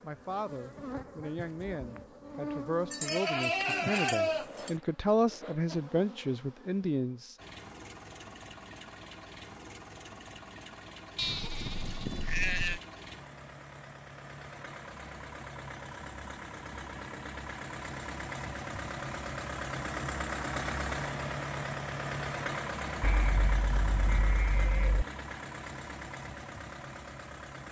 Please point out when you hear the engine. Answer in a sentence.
The engine can be heard from 7.3 to 27.6 s.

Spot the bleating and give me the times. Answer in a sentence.
The bleating can be heard from 2.9 to 4.7 s, from 11.2 to 12.8 s and from 23.0 to 25.1 s.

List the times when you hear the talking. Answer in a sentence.
You can hear the talking from 0.0 to 7.3 s.